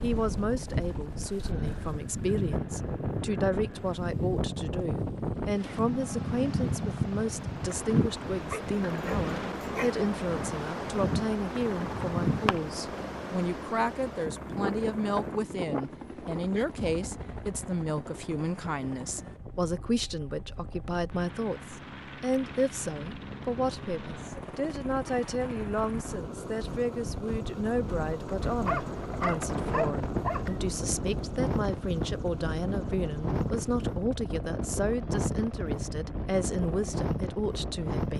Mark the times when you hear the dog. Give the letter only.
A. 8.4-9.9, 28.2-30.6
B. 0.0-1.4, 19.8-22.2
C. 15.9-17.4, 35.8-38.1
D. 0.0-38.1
A.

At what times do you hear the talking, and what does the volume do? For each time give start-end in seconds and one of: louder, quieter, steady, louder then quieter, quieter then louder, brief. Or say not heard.
0.0-38.1 steady.